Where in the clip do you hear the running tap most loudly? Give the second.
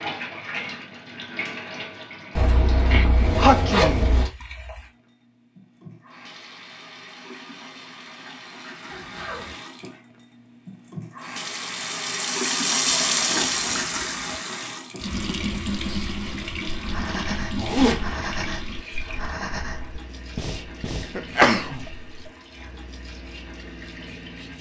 13 s.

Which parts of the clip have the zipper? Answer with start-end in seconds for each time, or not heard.
2.4-4.3, 12.8-14.3, 17.6-18.1.